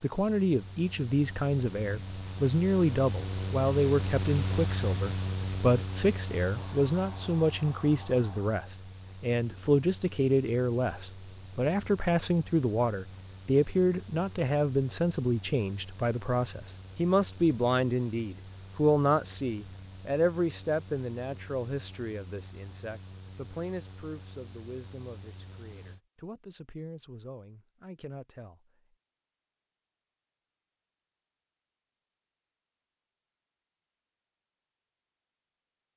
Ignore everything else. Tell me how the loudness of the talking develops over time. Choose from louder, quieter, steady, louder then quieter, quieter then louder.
quieter.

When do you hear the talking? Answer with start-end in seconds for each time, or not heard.
0.0-28.7.